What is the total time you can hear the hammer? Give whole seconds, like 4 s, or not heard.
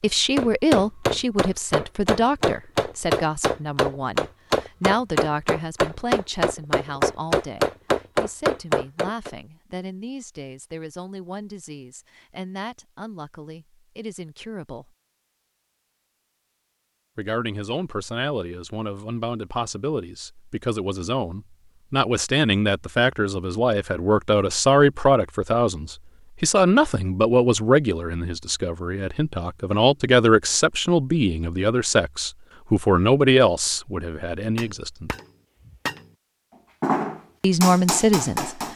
13 s.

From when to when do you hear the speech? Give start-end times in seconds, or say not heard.
0.0-14.9, 17.1-35.1, 37.4-38.5.